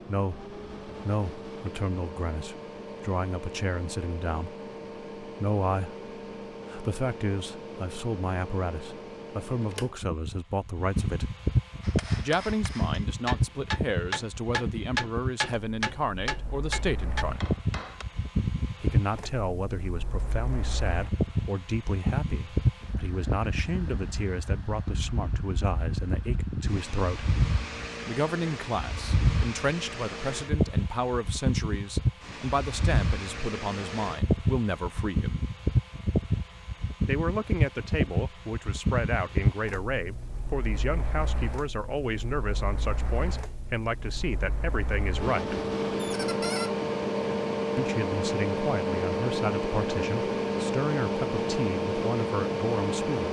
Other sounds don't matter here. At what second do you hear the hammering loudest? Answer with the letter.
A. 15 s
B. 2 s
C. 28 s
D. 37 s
A.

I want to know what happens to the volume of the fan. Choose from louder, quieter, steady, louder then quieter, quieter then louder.
louder.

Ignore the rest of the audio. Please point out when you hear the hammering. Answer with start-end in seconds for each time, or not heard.
11.8-18.1.